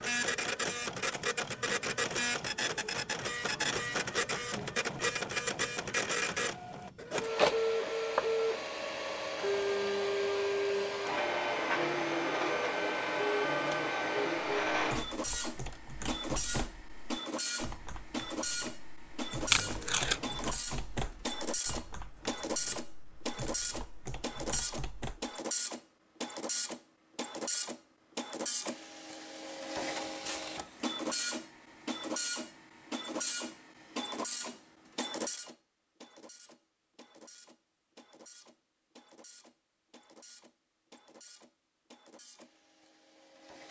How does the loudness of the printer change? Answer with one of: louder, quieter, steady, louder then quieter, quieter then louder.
quieter.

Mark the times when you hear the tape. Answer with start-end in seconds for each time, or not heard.
19.5-20.4.